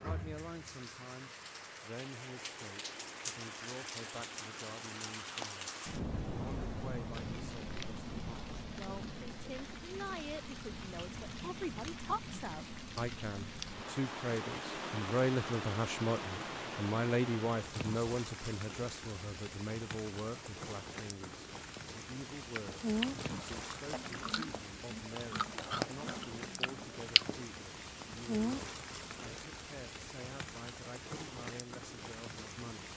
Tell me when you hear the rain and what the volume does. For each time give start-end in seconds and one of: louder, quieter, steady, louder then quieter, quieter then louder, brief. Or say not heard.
0.0-32.9 steady.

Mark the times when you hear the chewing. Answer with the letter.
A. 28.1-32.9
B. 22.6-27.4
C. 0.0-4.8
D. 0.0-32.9
B.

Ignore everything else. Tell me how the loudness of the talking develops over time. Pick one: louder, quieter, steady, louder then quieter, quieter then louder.
louder then quieter.